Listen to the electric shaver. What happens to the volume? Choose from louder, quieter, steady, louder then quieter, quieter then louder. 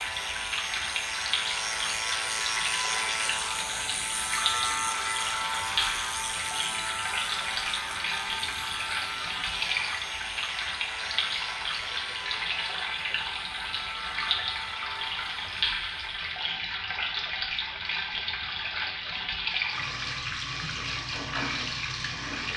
quieter.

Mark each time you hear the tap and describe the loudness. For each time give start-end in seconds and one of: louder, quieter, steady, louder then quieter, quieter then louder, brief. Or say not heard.
0.0-22.5 steady.